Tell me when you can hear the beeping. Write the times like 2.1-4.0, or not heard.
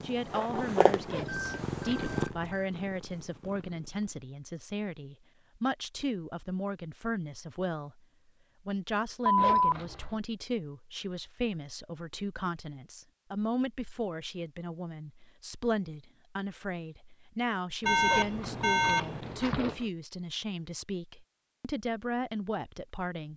1.2-2.6, 9.2-10.2, 17.9-19.4.